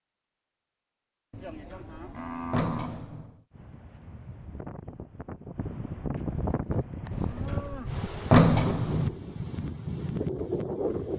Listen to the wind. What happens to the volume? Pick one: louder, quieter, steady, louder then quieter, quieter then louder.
louder.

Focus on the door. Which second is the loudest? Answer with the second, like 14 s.
8 s.